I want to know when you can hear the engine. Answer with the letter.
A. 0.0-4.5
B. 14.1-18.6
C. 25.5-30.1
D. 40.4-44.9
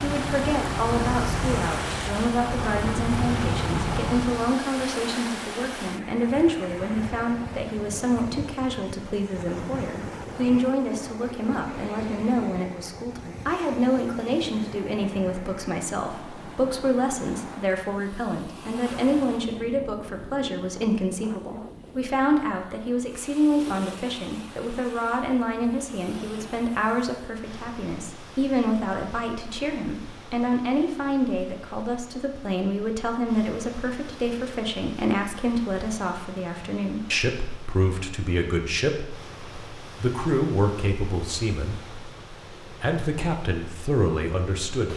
A.